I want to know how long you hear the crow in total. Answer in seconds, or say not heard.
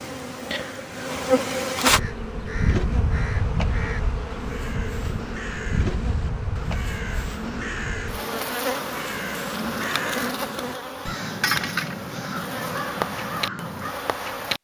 12 s.